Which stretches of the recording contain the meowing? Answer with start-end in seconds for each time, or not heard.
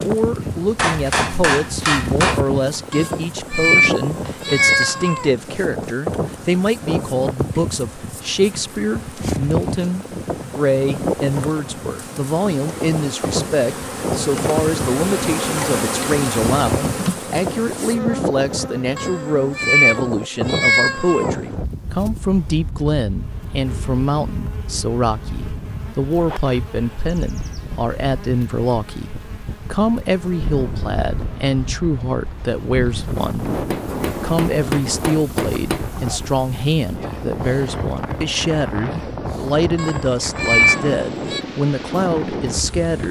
2.9-5.3, 18.9-21.4, 39.8-41.4.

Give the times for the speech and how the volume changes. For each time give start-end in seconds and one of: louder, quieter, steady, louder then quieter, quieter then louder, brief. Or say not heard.
0.0-33.6 steady
34.2-43.0 steady.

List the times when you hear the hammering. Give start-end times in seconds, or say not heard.
0.8-2.5, 33.7-35.9.